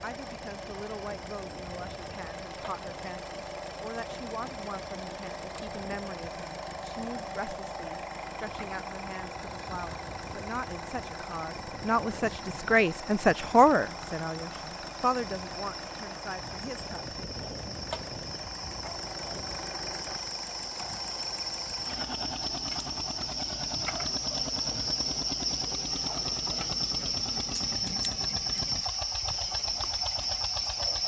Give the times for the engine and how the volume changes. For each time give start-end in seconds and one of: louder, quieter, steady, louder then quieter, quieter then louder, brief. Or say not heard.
0.0-31.0 steady.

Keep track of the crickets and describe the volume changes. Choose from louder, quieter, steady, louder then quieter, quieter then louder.
louder.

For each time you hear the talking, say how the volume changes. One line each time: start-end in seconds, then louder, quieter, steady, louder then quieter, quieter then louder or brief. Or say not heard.
0.0-17.2 louder.